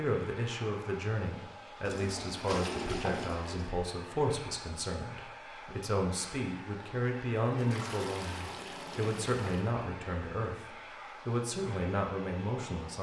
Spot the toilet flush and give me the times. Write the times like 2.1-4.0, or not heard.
1.9-3.8, 7.5-9.7.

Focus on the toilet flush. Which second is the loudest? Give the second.
3 s.